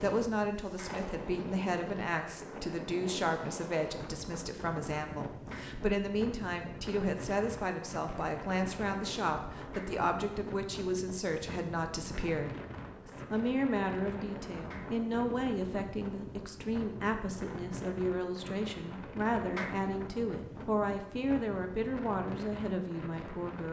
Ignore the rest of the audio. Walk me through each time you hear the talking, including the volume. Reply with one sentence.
You can hear the talking from 0.0 to 23.6 s, at a steady volume.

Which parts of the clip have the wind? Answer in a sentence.
You can hear the wind from 0.0 to 23.6 s.